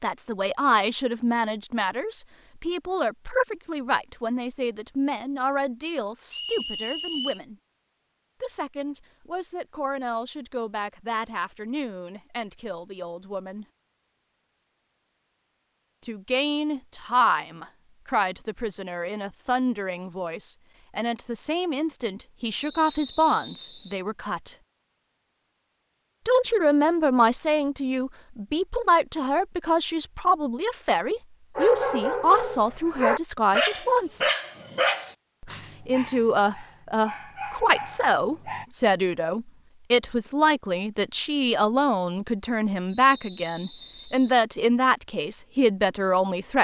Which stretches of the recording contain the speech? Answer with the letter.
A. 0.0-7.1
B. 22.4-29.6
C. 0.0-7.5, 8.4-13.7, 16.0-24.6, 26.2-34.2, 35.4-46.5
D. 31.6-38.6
C.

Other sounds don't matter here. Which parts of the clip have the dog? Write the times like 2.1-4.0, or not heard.
31.6-38.6.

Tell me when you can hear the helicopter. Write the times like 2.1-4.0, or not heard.
not heard.